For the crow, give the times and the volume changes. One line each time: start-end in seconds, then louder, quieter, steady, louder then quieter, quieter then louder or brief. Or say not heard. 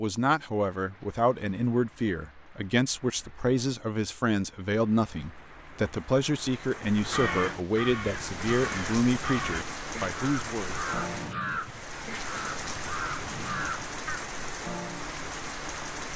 7.0-14.2 steady.